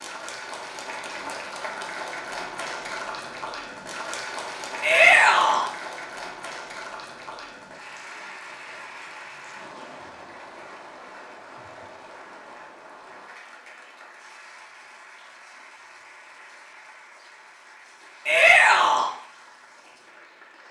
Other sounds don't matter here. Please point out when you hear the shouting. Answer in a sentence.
You can hear the shouting from 4.8 to 5.7 s and from 18.2 to 19.1 s.